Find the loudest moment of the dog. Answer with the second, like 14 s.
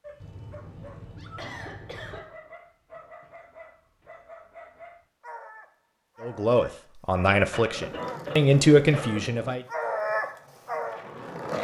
10 s.